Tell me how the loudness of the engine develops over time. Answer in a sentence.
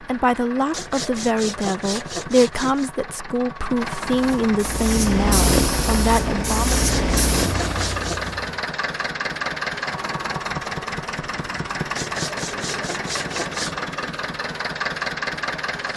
The loudness of the engine goes up.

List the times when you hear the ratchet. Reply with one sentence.
The ratchet can't be heard in this clip.